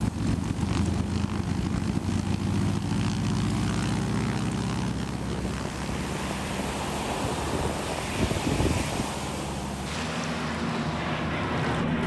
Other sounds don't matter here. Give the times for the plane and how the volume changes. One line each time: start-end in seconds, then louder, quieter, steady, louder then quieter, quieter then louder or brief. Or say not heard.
0.0-12.0 quieter then louder.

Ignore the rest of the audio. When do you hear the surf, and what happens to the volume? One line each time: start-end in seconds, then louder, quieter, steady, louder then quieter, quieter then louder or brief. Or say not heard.
0.0-12.0 louder then quieter.